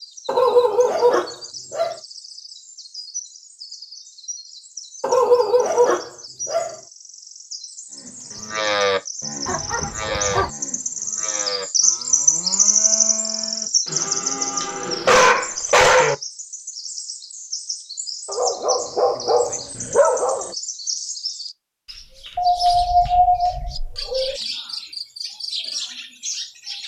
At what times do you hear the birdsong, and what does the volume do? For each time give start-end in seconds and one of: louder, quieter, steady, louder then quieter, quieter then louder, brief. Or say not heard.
0.0-26.8 louder then quieter.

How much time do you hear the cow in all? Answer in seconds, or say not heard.
8 s.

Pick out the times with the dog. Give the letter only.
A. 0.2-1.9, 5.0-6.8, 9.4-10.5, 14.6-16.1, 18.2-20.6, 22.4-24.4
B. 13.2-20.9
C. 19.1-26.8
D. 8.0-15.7
A.